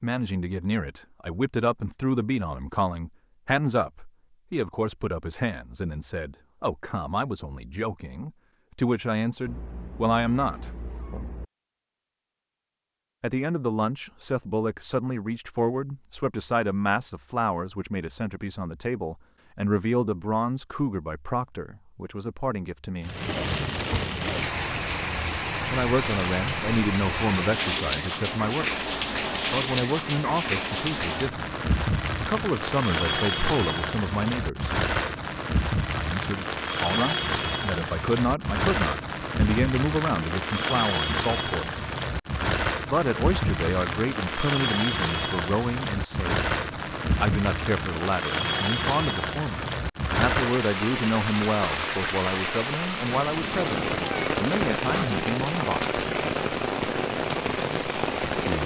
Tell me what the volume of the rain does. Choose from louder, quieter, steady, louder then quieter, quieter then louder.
steady.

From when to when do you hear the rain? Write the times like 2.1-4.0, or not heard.
23.0-58.6.